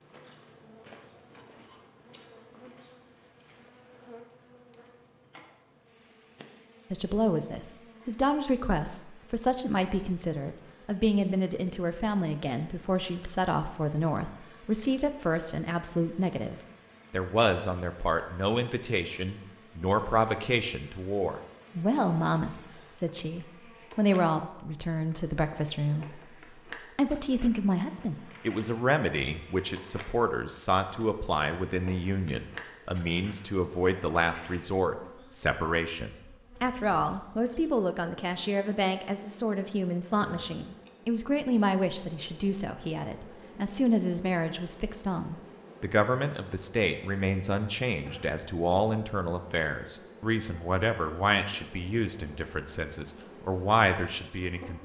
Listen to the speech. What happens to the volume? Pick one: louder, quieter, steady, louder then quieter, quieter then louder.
steady.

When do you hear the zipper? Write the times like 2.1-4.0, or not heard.
not heard.